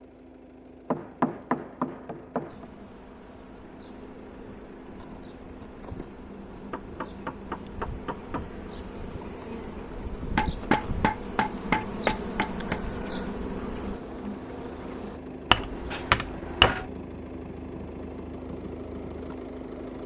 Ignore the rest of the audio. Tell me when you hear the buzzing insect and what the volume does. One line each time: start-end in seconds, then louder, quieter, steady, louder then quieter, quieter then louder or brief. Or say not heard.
2.5-15.2 louder.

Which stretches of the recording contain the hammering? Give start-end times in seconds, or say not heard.
0.9-2.6, 6.5-8.5, 10.3-12.8, 15.5-16.9.